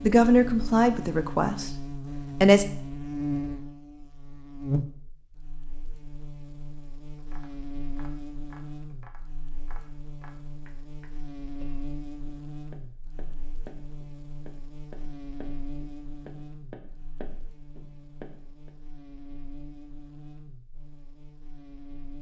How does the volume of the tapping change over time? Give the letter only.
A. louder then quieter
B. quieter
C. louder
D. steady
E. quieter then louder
C.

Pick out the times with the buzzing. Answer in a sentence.
The buzzing can be heard from 0.0 to 22.1 s.